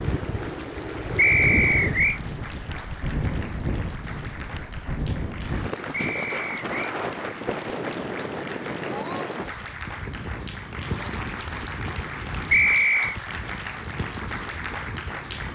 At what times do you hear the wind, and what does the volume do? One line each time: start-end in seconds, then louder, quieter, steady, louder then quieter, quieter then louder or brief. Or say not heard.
0.0-15.4 quieter.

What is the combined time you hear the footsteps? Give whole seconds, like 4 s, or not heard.
not heard.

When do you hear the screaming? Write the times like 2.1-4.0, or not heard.
8.8-9.4.